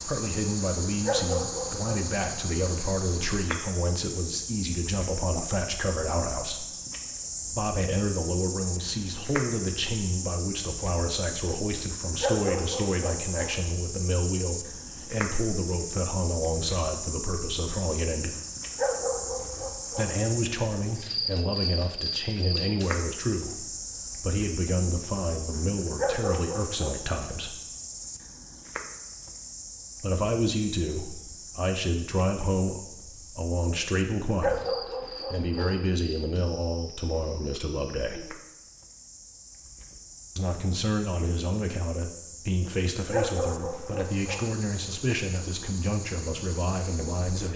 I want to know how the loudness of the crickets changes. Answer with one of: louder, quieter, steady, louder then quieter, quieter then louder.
quieter.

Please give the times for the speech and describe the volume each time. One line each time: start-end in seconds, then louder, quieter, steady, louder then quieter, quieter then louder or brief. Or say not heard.
0.0-6.7 steady
7.5-18.4 steady
19.9-27.6 steady
30.0-38.2 steady
40.4-47.5 steady.